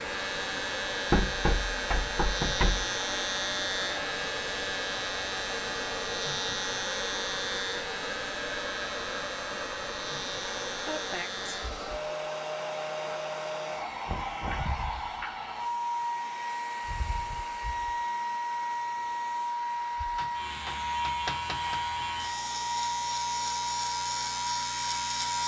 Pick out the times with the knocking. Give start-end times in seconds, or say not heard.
1.1-2.9, 14.1-14.7, 20.1-21.8.